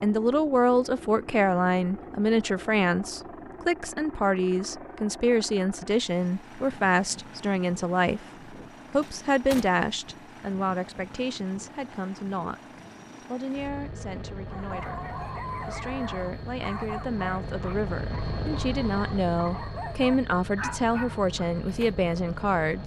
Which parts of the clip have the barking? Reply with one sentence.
The barking can be heard from 14.5 to 21.9 s.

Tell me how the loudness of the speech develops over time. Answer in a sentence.
The loudness of the speech goes down, then up.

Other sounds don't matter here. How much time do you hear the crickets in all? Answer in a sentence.
You can't hear the crickets here.